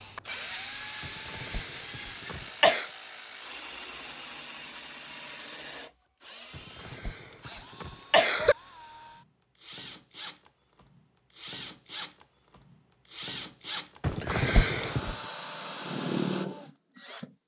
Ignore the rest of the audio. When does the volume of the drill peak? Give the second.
16 s.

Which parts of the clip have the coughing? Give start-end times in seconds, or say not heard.
1.1-2.9, 6.5-8.6, 14.0-15.2.